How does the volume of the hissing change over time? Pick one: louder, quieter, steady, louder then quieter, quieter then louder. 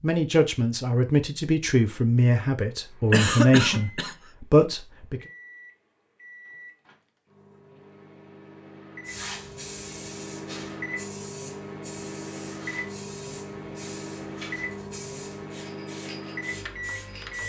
steady.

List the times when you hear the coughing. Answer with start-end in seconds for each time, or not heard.
3.1-4.2.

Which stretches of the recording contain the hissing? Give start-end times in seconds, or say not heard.
9.1-17.4.